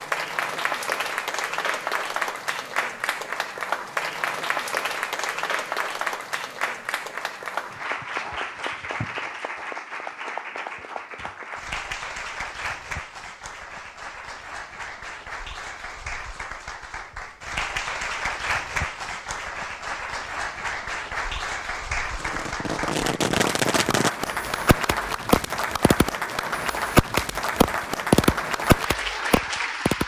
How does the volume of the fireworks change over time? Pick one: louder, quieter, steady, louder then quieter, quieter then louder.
louder.